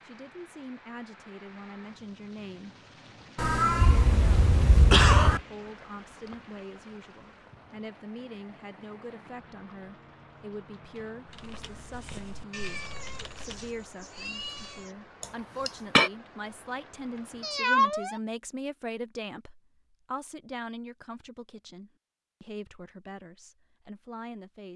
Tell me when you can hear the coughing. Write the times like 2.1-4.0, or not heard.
3.8-5.4, 15.2-16.1.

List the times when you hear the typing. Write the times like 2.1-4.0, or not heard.
11.2-13.8.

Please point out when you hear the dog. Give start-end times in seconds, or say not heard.
not heard.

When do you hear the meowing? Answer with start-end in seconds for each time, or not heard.
3.4-5.4, 12.5-14.9, 17.4-18.2.